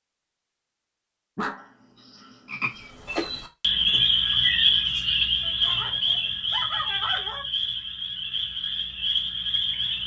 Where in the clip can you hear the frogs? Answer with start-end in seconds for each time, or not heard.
2.5-10.0.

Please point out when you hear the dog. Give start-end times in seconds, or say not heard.
1.4-2.9, 5.4-7.5.